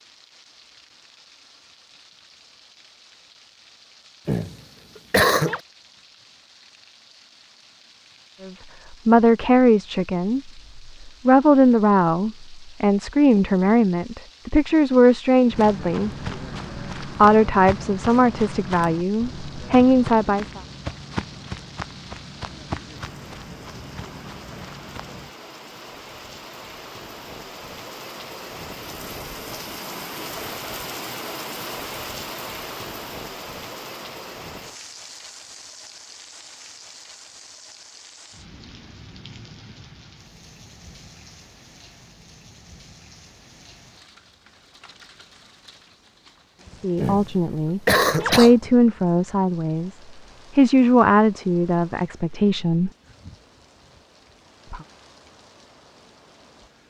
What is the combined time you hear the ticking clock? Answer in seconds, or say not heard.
not heard.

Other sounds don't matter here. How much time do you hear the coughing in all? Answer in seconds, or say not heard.
3 s.